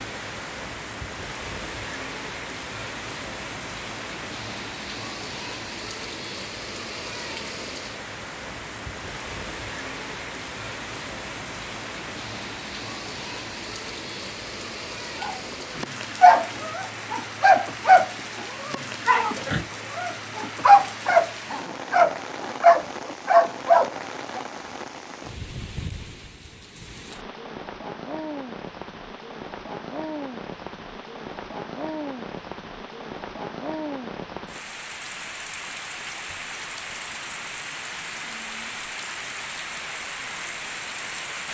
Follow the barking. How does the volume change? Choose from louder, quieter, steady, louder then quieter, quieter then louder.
quieter then louder.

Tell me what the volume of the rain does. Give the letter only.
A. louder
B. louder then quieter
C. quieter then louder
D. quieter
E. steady
E.